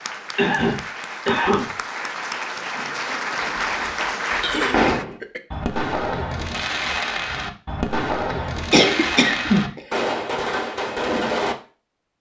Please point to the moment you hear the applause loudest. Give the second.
4 s.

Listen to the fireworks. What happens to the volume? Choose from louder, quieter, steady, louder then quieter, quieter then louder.
steady.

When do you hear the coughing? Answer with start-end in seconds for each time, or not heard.
0.3-1.8, 4.4-5.4, 8.3-9.8.